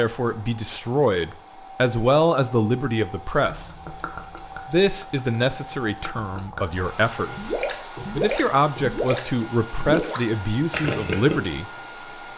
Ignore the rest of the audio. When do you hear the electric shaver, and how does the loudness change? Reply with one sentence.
The electric shaver can't be heard in this clip.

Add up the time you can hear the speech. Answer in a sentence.
The speech can be heard for 10 seconds in total.